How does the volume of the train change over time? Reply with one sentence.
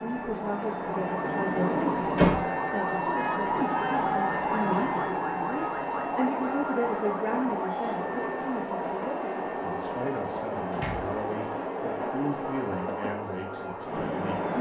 The loudness of the train stays about the same.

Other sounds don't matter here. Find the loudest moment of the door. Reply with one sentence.
The loudest moment of the door is at 2 seconds.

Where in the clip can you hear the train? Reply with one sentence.
You can hear the train from 0.0 to 14.5 s.